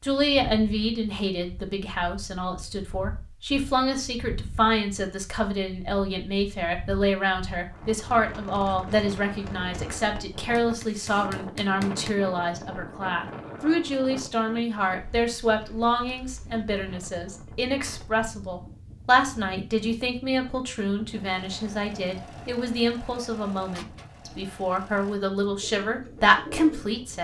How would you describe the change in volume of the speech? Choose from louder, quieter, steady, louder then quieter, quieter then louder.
steady.